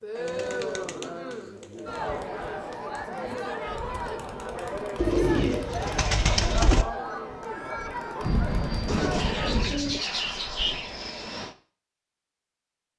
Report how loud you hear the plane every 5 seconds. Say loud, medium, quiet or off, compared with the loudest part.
off, loud, medium.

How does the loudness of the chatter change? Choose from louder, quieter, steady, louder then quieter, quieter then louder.
steady.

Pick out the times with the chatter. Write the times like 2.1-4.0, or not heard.
0.0-9.8.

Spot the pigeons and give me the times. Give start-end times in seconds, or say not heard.
0.1-2.1, 5.0-6.8, 8.8-11.2.